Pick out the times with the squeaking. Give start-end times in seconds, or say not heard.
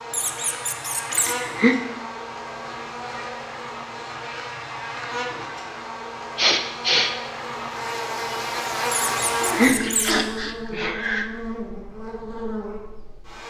0.1-1.4, 8.9-10.2.